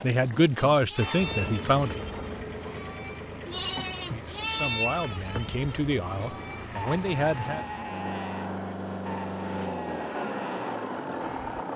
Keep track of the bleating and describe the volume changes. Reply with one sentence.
The loudness of the bleating goes up, then down.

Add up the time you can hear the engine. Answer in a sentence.
You can hear the engine for 12 seconds altogether.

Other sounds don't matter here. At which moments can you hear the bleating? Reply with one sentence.
You can hear the bleating from 0.7 to 11.7 s.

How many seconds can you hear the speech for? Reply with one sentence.
You can hear the speech for 6 seconds altogether.